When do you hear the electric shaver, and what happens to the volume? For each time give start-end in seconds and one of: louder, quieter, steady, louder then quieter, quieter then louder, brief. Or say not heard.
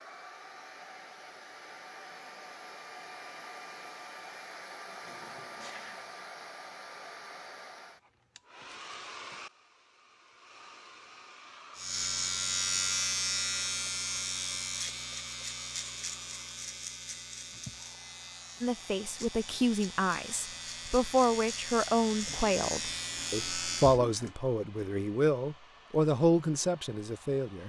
11.8-24.1 quieter then louder.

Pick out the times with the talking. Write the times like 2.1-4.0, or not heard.
18.6-27.6.